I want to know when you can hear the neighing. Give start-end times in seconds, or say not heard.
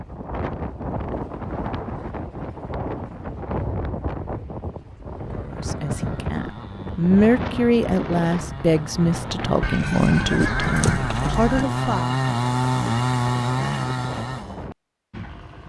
9.6-11.7.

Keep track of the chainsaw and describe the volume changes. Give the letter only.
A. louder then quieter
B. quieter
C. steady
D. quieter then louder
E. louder
E.